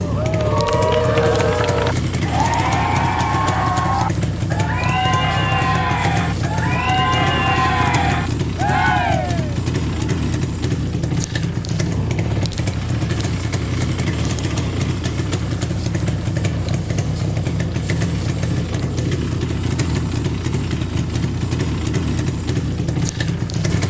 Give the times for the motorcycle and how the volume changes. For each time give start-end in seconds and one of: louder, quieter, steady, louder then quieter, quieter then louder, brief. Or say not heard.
0.0-23.8 steady.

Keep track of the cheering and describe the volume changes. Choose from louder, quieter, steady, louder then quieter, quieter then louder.
steady.